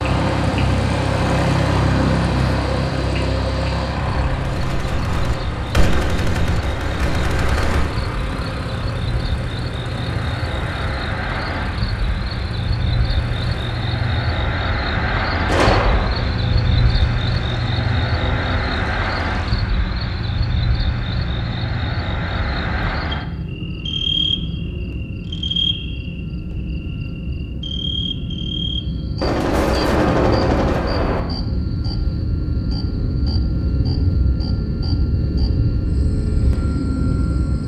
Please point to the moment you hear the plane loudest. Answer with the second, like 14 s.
2 s.